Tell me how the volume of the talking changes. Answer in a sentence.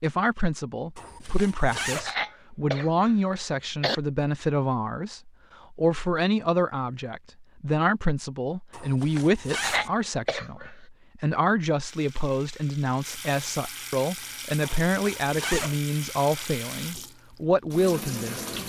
The loudness of the talking stays about the same.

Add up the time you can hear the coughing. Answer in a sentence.
You can hear the coughing for 3 seconds altogether.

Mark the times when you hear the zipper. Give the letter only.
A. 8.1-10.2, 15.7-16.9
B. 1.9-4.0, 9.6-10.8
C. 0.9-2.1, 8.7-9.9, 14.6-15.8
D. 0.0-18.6
C.